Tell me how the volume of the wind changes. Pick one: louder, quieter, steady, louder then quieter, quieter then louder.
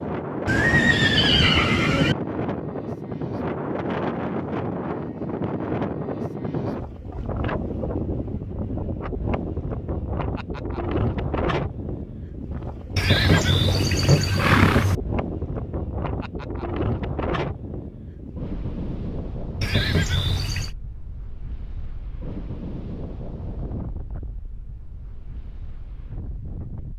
quieter.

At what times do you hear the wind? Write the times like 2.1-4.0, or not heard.
0.0-26.9.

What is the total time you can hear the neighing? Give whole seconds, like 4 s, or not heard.
5 s.